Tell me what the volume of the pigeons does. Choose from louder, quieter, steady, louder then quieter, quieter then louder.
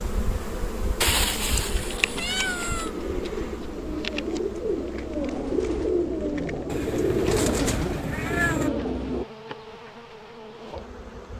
louder.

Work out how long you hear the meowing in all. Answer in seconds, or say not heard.
4 s.